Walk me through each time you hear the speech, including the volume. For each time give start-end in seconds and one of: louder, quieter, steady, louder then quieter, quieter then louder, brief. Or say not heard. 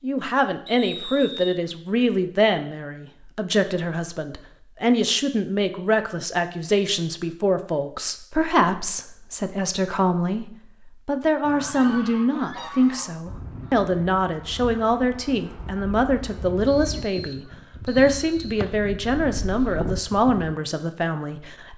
0.0-21.7 steady.